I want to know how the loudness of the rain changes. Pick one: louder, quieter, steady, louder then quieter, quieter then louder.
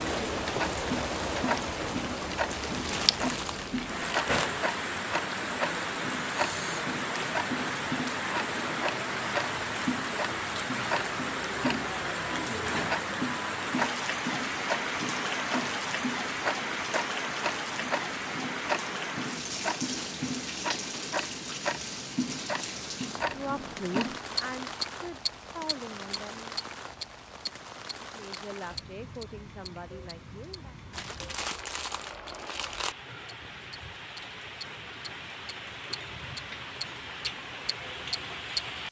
quieter.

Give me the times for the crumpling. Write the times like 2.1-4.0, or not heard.
2.5-4.5, 30.9-33.0.